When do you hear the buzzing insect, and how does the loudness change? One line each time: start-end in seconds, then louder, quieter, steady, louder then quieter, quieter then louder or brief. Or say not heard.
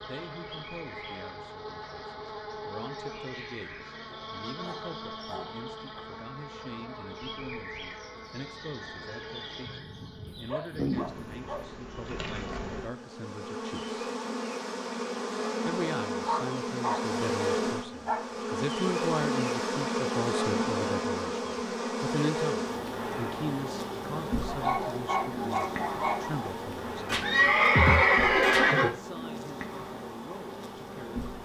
0.0-31.3 louder then quieter.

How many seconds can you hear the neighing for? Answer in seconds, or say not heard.
2 s.